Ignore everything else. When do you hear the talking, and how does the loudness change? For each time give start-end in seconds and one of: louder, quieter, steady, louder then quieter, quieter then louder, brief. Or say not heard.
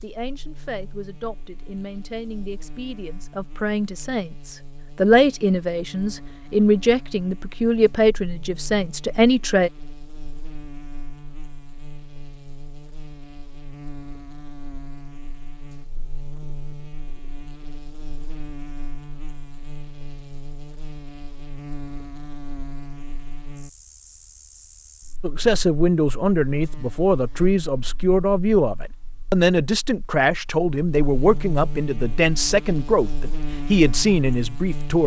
0.0-9.7 louder
25.2-35.0 steady.